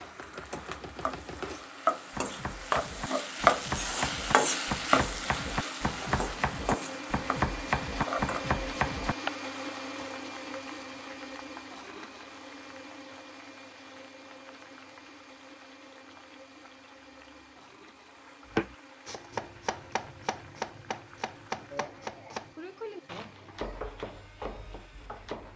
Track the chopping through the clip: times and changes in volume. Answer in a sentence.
The chopping can be heard from 0.0 to 9.3 s, getting louder; and from 18.5 to 25.5 s, getting quieter.